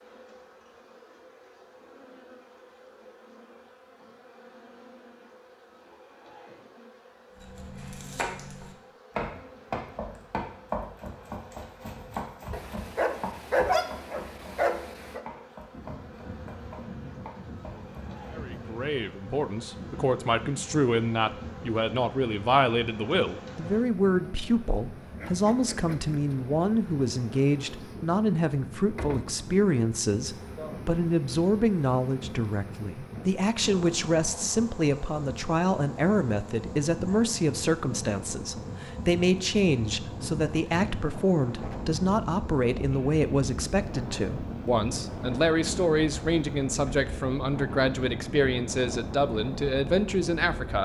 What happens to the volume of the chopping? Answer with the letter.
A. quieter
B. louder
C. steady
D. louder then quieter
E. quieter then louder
A.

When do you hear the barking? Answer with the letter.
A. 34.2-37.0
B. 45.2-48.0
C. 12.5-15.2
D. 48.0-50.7
C.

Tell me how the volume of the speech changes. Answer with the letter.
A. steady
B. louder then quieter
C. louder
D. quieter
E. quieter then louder
A.